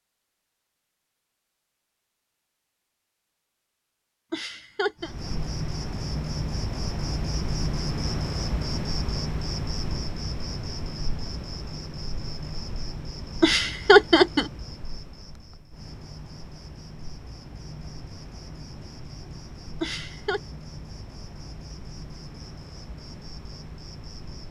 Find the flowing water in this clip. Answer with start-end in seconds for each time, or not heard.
not heard.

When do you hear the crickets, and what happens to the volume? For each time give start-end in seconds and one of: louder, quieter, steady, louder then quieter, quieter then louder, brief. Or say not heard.
5.0-24.4 quieter.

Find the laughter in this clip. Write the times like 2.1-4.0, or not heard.
4.3-5.1, 13.4-14.5, 19.8-20.4.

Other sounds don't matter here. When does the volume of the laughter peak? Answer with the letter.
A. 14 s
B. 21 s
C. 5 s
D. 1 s
A.